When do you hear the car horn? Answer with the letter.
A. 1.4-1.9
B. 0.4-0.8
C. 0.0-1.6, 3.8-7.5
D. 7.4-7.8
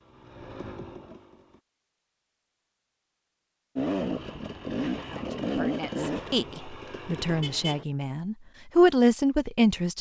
D.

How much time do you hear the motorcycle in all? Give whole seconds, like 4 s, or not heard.
5 s.